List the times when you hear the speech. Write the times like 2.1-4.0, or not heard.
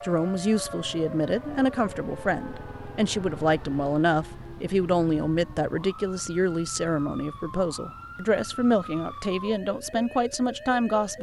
0.0-11.1.